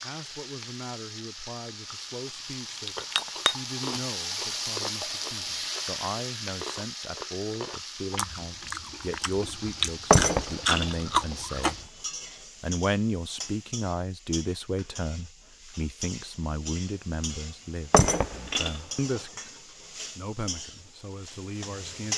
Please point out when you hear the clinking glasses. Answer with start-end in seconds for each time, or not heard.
2.9-3.5, 10.1-11.3, 17.9-19.2.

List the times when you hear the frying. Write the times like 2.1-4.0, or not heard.
0.0-22.1.